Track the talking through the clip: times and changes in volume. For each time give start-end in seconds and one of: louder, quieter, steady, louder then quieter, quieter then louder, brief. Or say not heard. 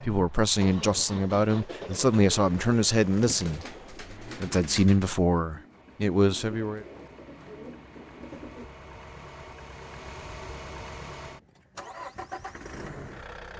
0.0-6.8 steady.